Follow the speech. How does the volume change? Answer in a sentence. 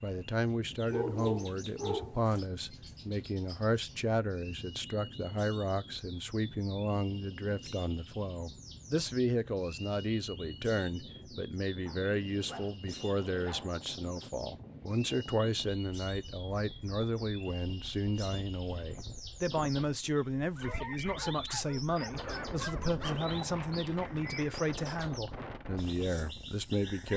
The loudness of the speech stays about the same.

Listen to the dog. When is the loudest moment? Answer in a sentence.
The loudest moment of the dog is at 1 second.